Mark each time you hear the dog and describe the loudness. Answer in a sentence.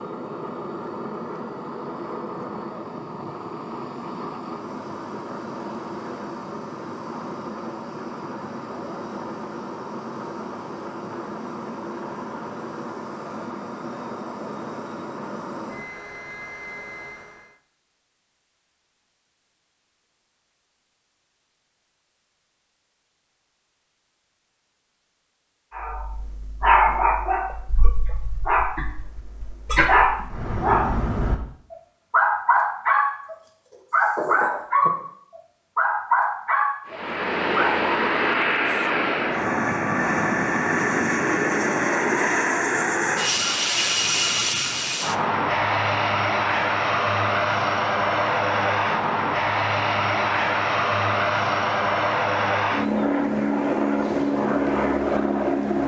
The dog can be heard from 25.8 to 35.0 s, getting quieter then louder; and briefly from 35.8 to 37.9 s.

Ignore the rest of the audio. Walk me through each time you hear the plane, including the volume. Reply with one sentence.
The plane can be heard from 0.0 to 17.6 s, at a steady volume; and from 36.9 to 55.8 s, at a steady volume.